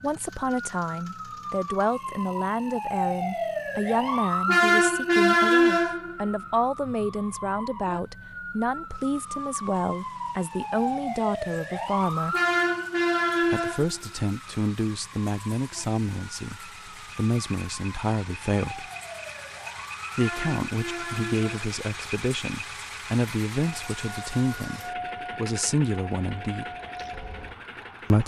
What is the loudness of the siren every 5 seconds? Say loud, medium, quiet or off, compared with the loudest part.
loud, loud, loud, quiet, medium, quiet.